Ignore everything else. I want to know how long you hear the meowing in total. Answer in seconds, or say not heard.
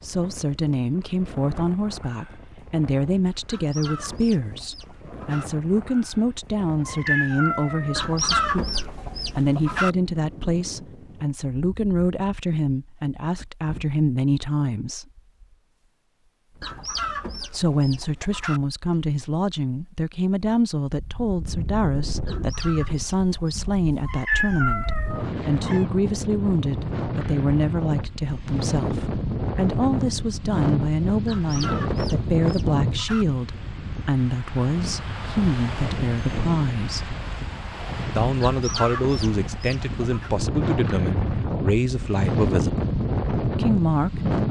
3 s.